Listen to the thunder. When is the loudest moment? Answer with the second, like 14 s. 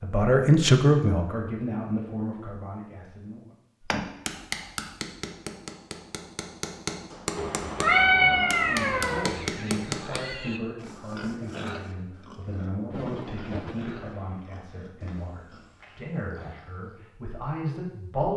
13 s.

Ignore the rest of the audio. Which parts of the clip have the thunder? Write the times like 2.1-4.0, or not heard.
12.9-14.4.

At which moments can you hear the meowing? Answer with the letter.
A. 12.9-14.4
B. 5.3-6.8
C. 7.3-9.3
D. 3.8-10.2
C.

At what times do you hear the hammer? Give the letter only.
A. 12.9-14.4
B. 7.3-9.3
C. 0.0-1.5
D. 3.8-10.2
D.